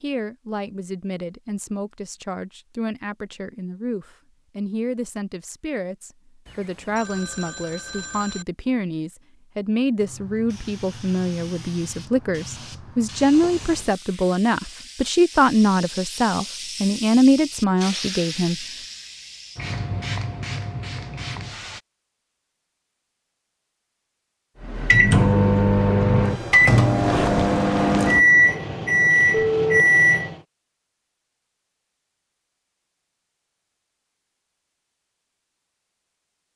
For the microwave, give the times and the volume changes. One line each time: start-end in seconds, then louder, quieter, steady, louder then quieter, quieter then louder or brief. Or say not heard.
24.6-30.4 steady.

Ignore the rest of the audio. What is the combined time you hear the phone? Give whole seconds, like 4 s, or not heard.
3 s.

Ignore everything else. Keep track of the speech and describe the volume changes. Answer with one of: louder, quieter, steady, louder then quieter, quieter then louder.
louder.